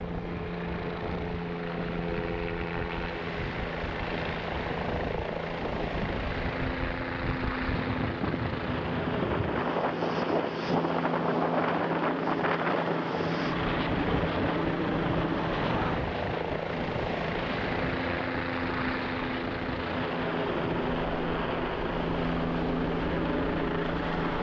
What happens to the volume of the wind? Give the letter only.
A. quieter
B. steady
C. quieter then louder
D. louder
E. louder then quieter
E.